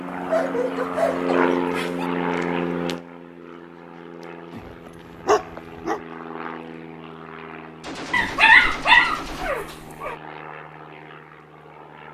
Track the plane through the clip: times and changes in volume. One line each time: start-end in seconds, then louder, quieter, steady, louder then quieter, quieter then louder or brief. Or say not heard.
0.0-12.0 quieter.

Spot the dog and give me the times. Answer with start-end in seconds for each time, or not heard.
0.1-2.1, 4.5-6.0, 8.1-10.2.